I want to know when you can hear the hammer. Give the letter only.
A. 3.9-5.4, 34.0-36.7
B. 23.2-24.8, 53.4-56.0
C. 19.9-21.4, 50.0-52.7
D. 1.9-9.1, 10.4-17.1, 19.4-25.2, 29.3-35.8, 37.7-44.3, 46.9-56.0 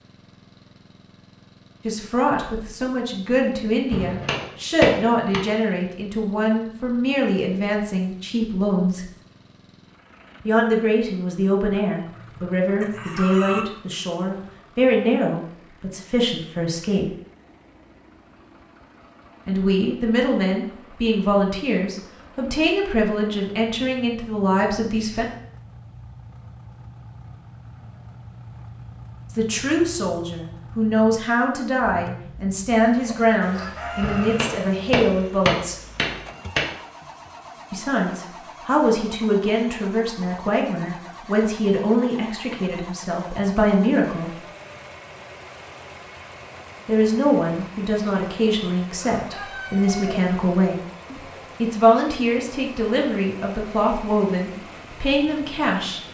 A.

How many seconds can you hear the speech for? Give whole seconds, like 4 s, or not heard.
42 s.